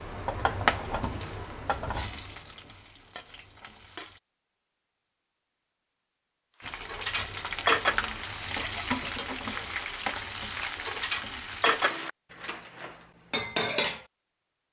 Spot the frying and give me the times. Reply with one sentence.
You can hear the frying from 0.0 to 4.2 s and from 6.6 to 12.1 s.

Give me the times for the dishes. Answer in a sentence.
You can hear the dishes from 6.7 to 14.1 s.